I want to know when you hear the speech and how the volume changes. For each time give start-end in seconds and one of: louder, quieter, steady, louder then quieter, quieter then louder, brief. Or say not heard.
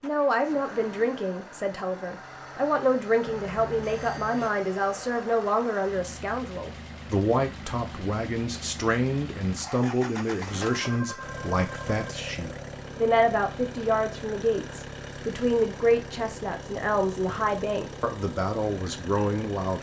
0.0-19.7 steady.